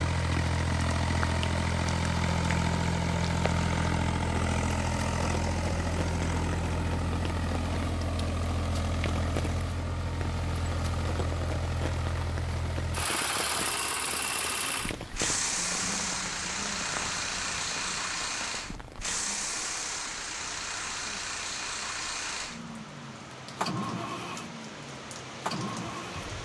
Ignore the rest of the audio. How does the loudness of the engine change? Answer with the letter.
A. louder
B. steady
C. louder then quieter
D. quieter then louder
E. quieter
E.